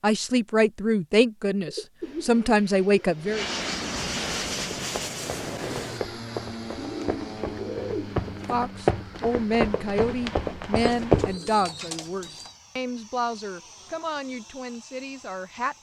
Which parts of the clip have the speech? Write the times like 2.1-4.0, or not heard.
0.0-3.5, 8.4-15.7.